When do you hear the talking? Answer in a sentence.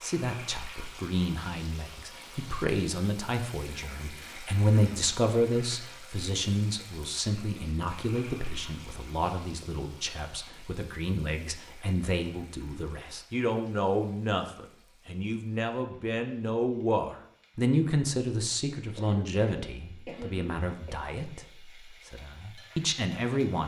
You can hear the talking from 0.0 to 23.6 s.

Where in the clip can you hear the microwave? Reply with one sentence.
You can't hear the microwave here.